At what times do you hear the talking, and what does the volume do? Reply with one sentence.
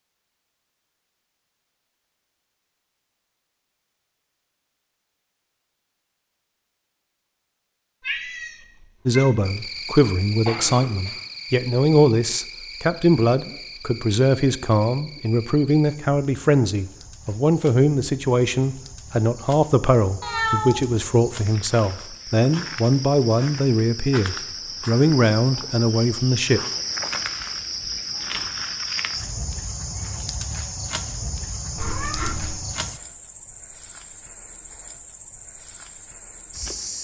You can hear the talking from 9.1 to 26.6 s, at a steady volume.